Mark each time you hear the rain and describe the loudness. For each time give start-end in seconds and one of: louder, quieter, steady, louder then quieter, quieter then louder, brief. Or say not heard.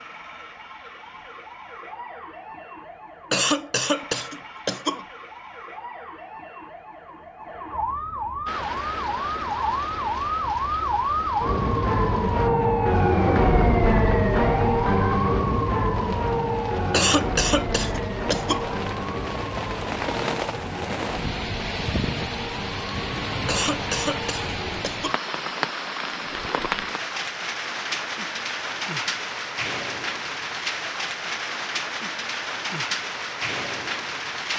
8.4-34.5 louder.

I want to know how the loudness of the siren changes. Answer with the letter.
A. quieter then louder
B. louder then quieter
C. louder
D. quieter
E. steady
B.